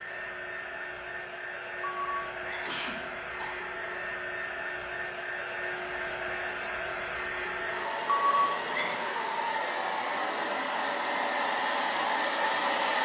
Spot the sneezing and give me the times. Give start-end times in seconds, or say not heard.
1.8-3.5, 8.1-9.0.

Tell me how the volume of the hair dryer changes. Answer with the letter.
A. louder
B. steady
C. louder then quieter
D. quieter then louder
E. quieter
A.